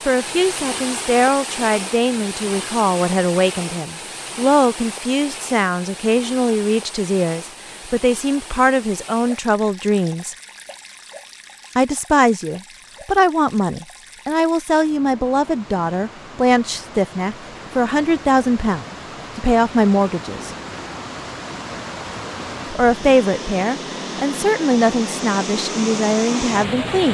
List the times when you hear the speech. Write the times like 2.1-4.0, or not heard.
0.1-10.3, 11.8-20.6, 22.7-27.0.